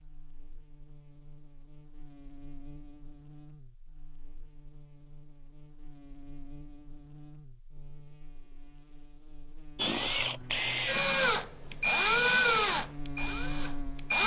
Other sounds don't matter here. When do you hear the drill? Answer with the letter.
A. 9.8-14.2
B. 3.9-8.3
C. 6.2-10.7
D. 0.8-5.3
A.